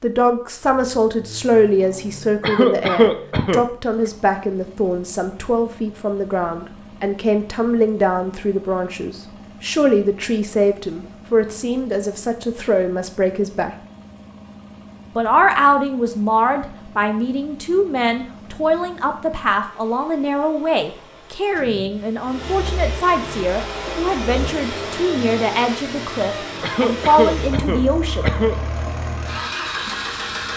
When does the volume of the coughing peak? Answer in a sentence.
The loudest moment of the coughing is at 3 seconds.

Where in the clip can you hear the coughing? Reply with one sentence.
The coughing can be heard from 2.4 to 3.6 s and from 26.6 to 28.6 s.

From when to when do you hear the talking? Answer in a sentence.
The talking can be heard from 0.0 to 13.7 s and from 15.2 to 28.4 s.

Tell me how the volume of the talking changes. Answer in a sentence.
The volume of the talking stays about the same.